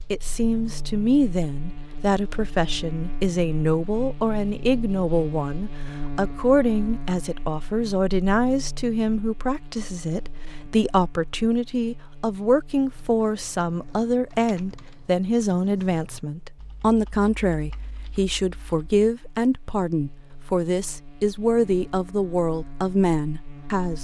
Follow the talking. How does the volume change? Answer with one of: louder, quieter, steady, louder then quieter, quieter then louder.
steady.